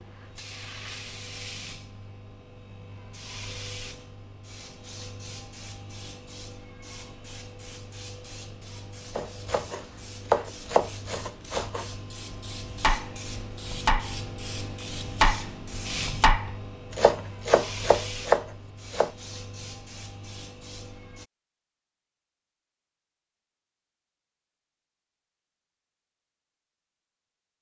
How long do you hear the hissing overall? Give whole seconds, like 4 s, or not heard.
21 s.